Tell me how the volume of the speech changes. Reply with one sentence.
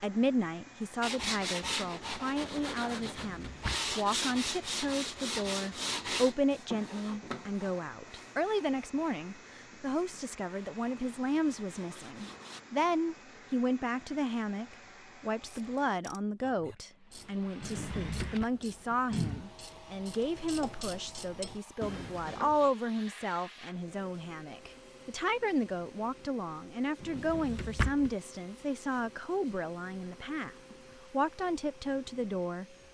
The volume of the speech stays about the same.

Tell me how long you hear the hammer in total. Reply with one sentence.
The hammer can't be heard in this clip.